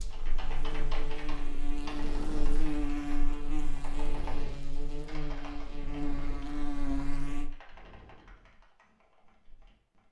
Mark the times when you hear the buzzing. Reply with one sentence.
The buzzing can be heard from 0.0 to 7.5 s.